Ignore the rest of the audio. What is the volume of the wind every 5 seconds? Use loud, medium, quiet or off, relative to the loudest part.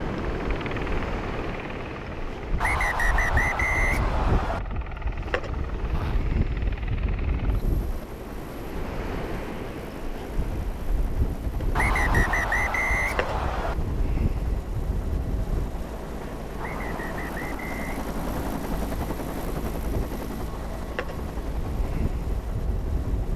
loud, loud, loud, medium, loud.